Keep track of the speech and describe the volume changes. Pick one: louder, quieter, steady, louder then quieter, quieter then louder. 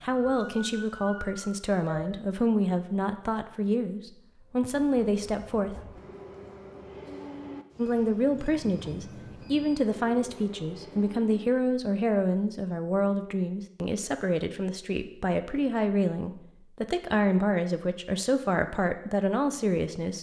steady.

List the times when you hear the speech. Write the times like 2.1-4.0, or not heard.
0.0-5.8, 7.8-20.1.